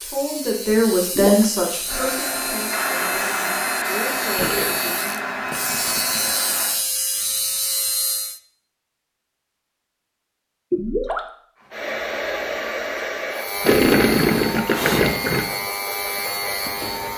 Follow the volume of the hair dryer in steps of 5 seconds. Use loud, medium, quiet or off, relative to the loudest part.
loud, loud, loud, off.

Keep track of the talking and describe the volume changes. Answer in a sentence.
The loudness of the talking goes down, then up.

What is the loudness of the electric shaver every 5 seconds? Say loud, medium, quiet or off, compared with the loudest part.
medium, loud, loud, loud.